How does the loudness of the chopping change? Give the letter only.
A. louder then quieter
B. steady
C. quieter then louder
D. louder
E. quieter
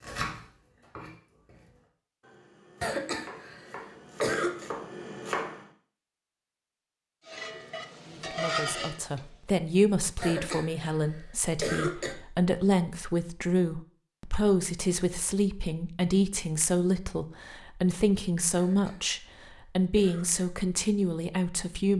C.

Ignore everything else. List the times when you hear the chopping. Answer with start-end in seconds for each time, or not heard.
0.0-5.7.